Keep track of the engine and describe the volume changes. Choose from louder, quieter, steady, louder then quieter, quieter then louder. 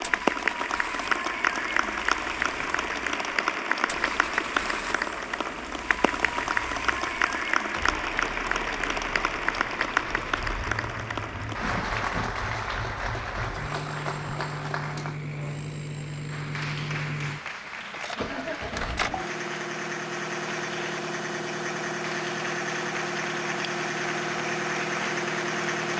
louder.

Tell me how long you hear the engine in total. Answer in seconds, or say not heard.
26 s.